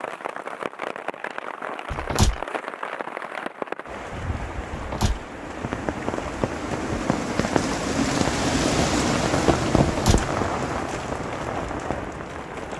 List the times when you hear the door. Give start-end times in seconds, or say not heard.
1.9-2.5, 4.7-5.2, 9.8-10.3.